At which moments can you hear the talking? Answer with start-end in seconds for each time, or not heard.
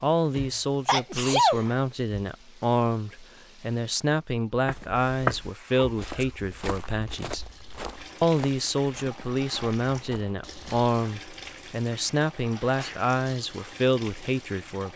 0.0-7.5, 8.2-14.9.